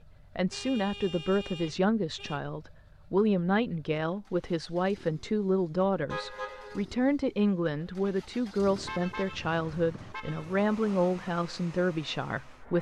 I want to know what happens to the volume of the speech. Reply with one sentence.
The loudness of the speech stays about the same.